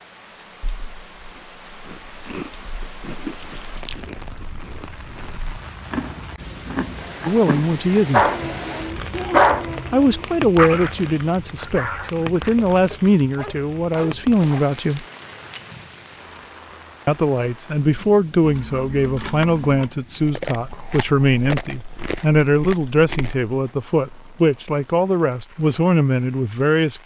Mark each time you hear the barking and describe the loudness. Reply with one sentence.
The barking can be heard from 8.1 to 14.8 s, getting quieter.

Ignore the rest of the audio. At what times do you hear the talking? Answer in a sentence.
You can hear the talking from 7.2 to 8.3 s, from 9.9 to 15.1 s and from 17.1 to 27.0 s.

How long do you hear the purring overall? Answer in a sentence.
The purring can't be heard in this clip.